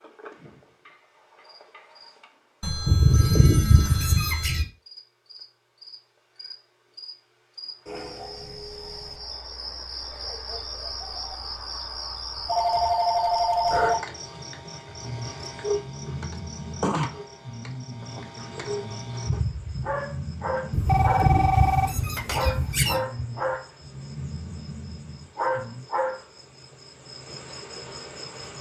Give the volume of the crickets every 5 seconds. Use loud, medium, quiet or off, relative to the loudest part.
quiet, medium, loud, loud, loud, loud.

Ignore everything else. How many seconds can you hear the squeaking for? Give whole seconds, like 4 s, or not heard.
4 s.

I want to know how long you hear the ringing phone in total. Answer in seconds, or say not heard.
5 s.